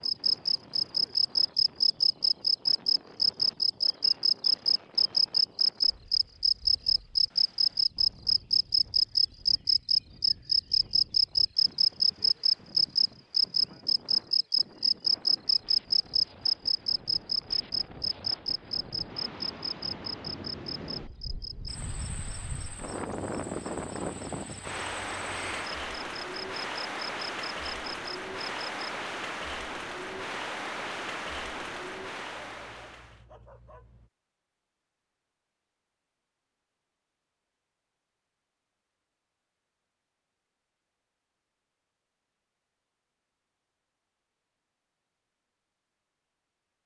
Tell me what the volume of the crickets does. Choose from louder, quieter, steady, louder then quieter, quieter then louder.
quieter.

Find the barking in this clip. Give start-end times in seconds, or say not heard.
32.4-34.1.